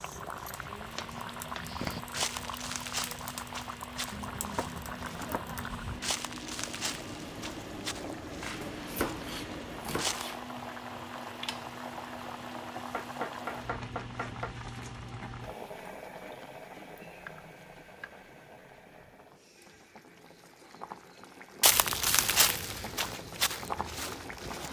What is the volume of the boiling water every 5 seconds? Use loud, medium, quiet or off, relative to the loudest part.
loud, loud, loud, medium, loud.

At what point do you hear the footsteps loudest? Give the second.
22 s.